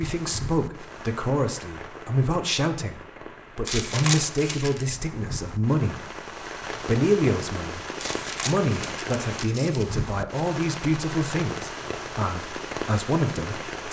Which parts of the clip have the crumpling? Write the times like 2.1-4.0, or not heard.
3.6-4.8, 8.0-9.8.